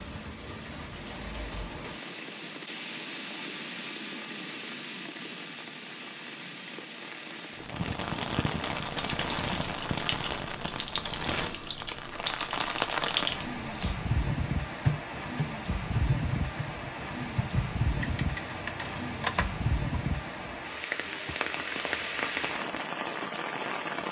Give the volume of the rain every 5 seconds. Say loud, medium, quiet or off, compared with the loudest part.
medium, loud, loud, loud, loud.